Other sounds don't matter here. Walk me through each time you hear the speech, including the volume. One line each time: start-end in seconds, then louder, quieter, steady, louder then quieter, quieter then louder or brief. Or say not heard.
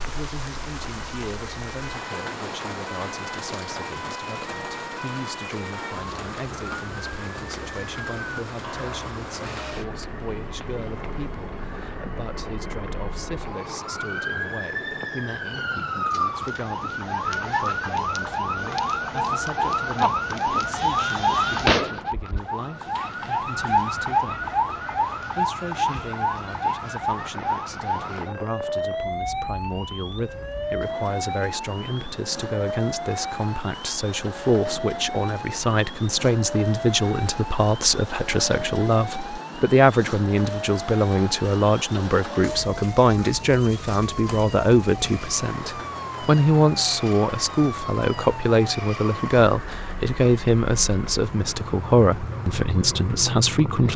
0.0-24.4 steady
25.2-53.9 louder.